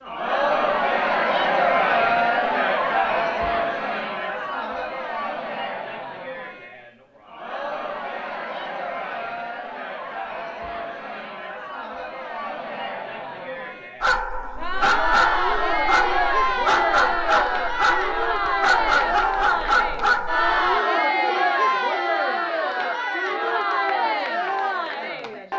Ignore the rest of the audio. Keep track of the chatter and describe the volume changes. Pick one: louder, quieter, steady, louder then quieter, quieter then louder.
quieter then louder.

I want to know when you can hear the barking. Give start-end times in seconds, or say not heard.
14.0-20.8.